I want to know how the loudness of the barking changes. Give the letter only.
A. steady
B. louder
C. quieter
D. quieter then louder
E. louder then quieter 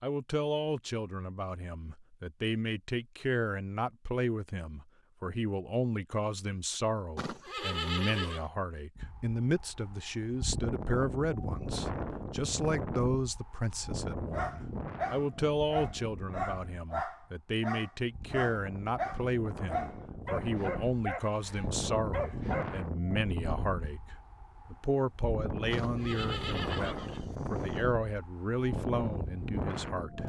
A.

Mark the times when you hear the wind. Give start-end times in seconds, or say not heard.
8.9-30.2.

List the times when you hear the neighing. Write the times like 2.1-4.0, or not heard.
7.2-8.5, 25.7-27.8.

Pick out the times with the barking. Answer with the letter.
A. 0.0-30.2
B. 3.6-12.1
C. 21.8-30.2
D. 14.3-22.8
D.